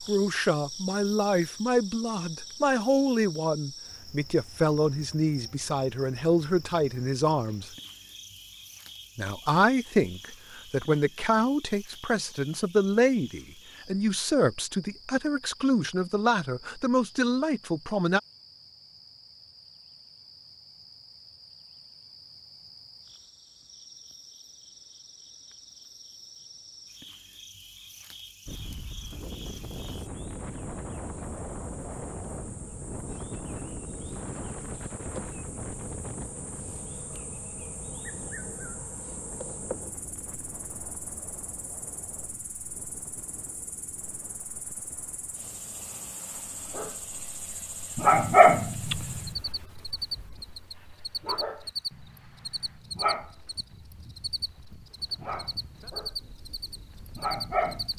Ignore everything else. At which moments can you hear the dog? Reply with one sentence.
You can hear the dog from 46.4 to 57.9 s.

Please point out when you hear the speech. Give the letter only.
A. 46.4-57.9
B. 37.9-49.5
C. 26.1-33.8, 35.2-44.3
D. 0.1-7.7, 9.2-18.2
D.